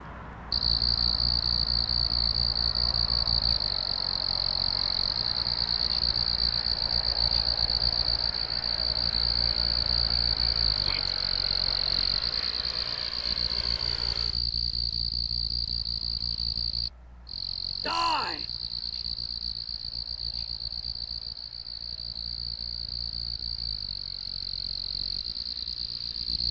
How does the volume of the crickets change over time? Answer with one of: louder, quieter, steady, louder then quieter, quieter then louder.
quieter.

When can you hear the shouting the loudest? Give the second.
18 s.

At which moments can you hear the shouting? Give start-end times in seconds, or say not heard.
10.7-11.2, 17.8-18.4.